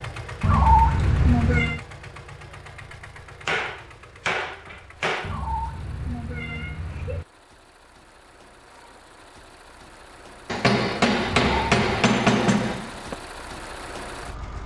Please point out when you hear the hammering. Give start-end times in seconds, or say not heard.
3.5-5.3, 10.4-13.2.